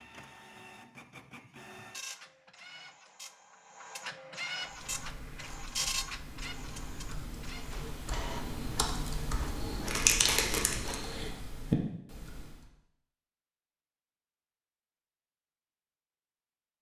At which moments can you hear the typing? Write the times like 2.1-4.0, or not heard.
4.7-12.7.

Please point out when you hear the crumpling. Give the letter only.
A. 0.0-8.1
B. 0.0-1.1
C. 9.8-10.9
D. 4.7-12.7
C.